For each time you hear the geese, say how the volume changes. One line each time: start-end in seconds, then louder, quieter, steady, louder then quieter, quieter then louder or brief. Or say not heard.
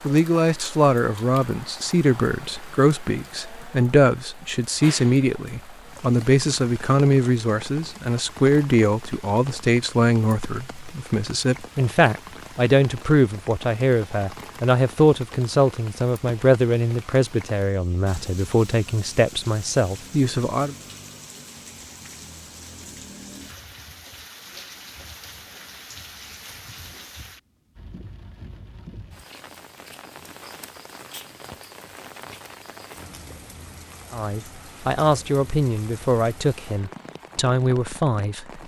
not heard.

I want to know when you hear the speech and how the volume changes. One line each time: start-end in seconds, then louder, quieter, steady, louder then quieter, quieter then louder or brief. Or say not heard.
0.0-20.8 steady
34.1-38.6 quieter then louder.